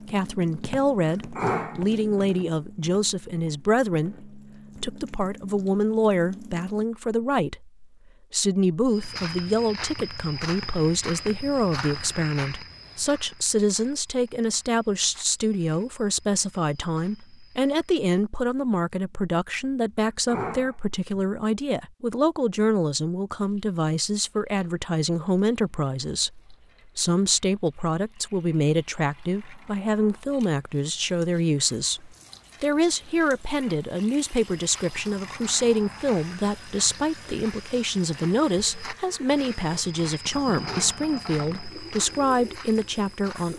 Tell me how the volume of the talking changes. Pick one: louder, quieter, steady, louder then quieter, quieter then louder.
steady.